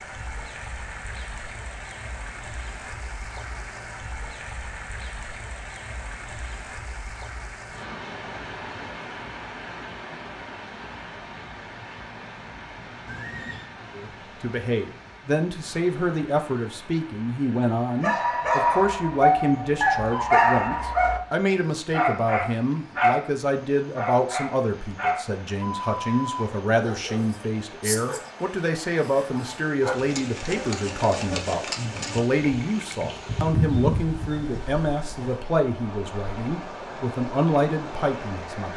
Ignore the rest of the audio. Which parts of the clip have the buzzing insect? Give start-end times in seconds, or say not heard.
29.9-35.4.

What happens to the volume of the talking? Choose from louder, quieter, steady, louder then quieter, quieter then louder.
steady.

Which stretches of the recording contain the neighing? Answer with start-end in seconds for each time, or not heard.
13.1-13.7.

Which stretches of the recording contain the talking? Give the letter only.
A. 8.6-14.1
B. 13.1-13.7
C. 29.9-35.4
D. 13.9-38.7
D.